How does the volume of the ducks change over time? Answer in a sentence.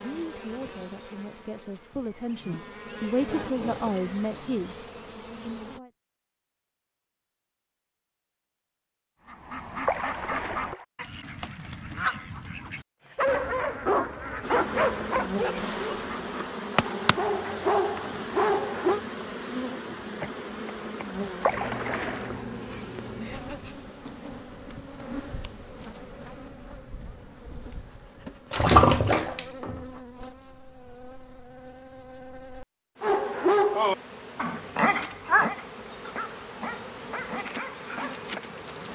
The loudness of the ducks goes down.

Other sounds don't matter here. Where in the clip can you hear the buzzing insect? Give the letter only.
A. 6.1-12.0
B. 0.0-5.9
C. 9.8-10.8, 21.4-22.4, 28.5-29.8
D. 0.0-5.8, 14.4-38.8
D.